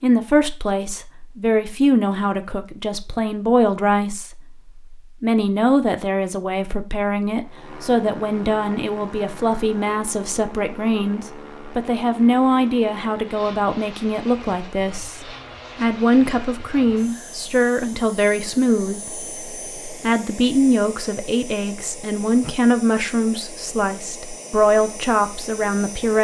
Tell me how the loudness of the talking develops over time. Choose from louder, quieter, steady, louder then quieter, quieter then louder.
steady.